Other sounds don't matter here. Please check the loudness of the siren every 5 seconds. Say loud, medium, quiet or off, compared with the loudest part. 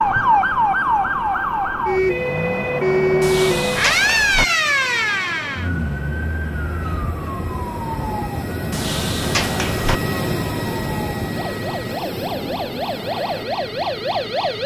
loud, medium, medium.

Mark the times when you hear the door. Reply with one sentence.
The door can be heard from 3.2 to 4.5 s and from 8.7 to 10.0 s.